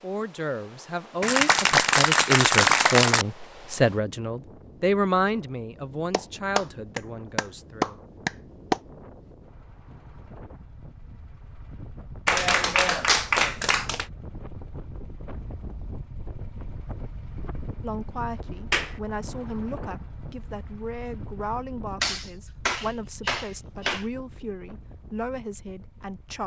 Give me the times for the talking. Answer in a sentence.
The talking can be heard from 0.0 to 8.0 s and from 17.8 to 26.4 s.